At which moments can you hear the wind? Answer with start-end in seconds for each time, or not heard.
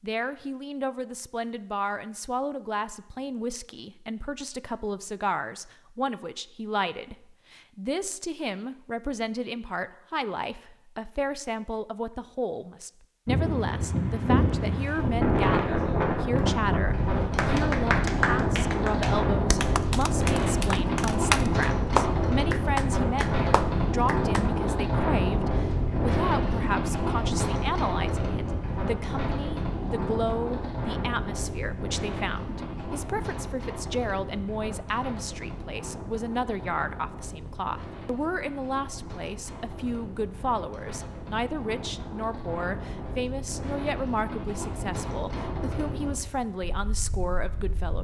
13.2-47.9.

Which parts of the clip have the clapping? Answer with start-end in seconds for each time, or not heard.
17.4-24.4.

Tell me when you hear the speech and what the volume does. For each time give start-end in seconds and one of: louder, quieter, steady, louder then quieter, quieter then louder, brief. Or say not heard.
0.0-47.9 steady.